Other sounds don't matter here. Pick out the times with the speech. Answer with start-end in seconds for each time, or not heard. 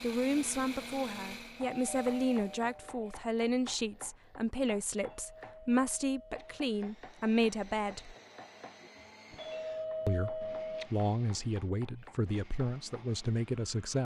0.0-8.2, 10.1-13.9.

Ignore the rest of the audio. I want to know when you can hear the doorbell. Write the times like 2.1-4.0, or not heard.
1.8-3.0, 4.9-6.6, 9.3-10.9.